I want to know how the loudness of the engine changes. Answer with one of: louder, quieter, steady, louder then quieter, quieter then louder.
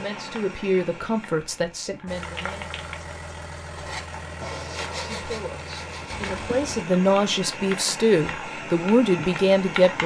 steady.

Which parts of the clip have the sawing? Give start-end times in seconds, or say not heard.
3.8-6.3.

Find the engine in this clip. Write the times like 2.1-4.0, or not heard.
2.0-6.8.